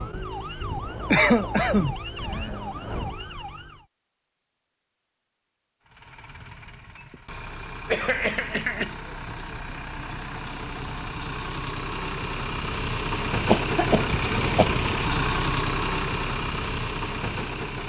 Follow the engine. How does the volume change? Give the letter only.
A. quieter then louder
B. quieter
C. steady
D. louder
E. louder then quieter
D.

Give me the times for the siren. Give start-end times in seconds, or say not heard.
0.0-3.9.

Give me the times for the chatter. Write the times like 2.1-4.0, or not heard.
not heard.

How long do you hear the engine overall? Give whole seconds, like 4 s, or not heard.
12 s.